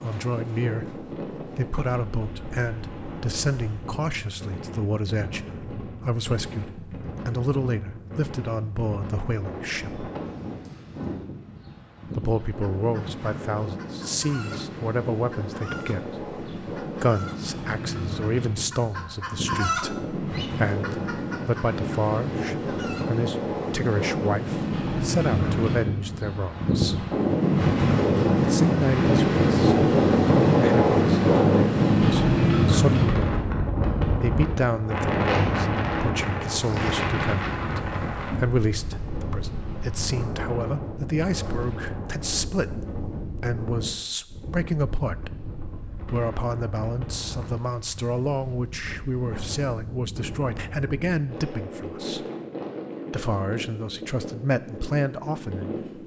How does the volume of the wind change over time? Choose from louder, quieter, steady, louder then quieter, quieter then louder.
louder then quieter.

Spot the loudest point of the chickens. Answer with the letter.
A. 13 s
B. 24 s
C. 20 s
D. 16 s
C.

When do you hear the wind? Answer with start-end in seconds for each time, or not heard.
0.0-56.0.